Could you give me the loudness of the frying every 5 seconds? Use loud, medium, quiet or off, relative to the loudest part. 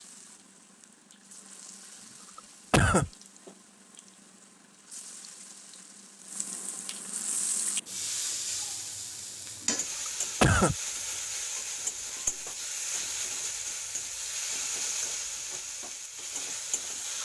quiet, loud, loud, loud.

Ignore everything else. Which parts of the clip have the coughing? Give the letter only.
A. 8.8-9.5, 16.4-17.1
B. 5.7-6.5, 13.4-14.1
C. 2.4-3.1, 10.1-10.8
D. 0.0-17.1
C.